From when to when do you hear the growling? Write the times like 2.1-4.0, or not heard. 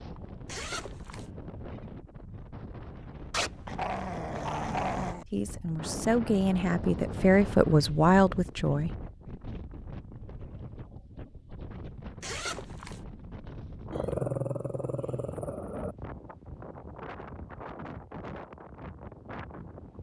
3.3-5.2, 13.9-15.9.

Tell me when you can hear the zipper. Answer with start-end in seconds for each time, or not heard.
0.5-1.3, 12.2-13.1.